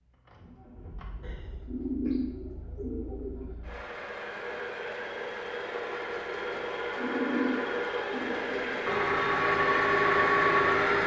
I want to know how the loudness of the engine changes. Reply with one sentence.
The volume of the engine goes up.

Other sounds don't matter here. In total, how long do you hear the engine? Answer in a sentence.
The engine can be heard for 11 seconds in total.